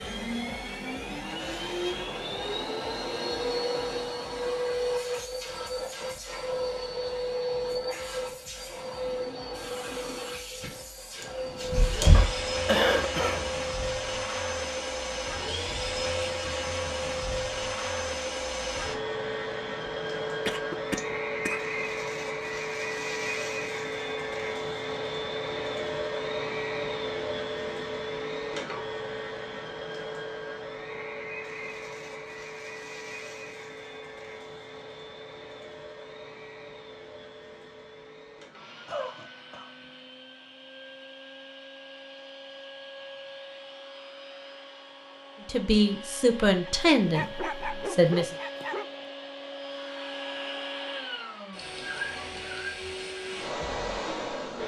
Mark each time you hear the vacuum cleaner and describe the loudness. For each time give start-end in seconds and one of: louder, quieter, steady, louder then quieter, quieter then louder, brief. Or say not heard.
0.0-54.6 quieter then louder.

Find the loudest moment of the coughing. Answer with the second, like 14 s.
13 s.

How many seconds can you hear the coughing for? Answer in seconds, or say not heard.
4 s.